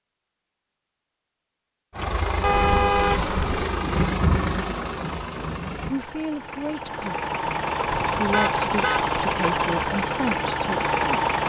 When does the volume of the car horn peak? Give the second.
3 s.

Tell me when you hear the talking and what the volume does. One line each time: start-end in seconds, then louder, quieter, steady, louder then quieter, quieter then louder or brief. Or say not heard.
5.8-11.4 quieter then louder.